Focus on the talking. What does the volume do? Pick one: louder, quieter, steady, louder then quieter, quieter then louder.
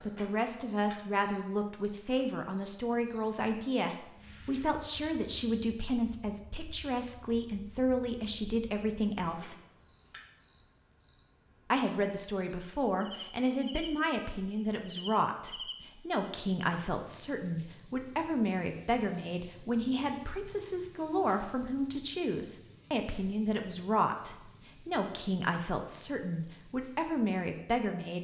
steady.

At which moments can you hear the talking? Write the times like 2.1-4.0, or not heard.
0.0-9.6, 11.7-28.1.